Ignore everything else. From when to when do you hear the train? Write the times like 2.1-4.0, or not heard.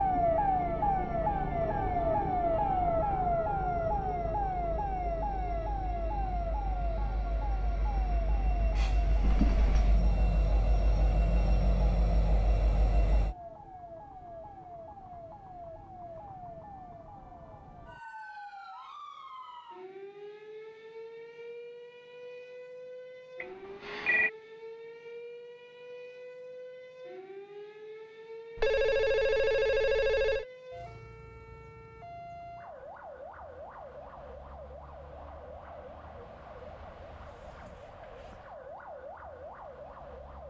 0.0-13.3.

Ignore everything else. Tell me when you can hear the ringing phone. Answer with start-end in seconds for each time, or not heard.
9.2-9.9, 23.4-24.3, 28.6-30.4.